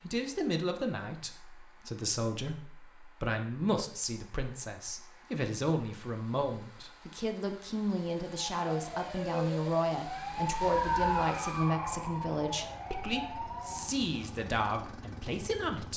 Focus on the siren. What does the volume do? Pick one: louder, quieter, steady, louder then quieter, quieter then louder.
louder then quieter.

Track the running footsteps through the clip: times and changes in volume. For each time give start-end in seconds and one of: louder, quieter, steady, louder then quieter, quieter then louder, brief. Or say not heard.
not heard.